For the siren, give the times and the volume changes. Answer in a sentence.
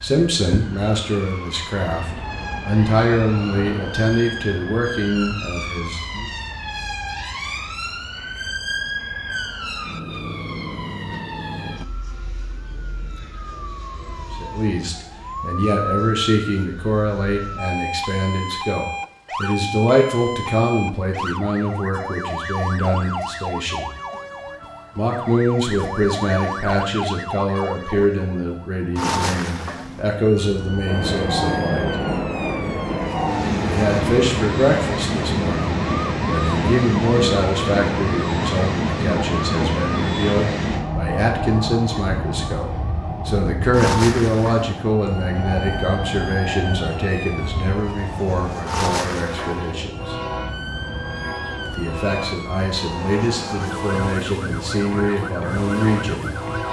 The siren can be heard from 0.0 to 56.6 s, at a steady volume.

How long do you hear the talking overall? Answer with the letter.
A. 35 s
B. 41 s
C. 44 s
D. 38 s
C.